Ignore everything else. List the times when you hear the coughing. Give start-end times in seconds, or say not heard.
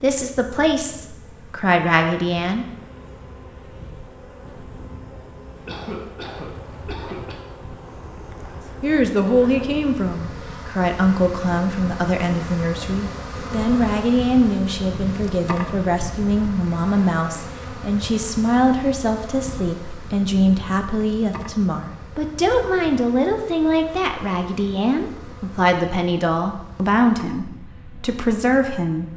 5.7-7.3.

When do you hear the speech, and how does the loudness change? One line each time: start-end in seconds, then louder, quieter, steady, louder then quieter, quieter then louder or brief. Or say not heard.
0.0-2.6 brief
8.8-29.1 steady.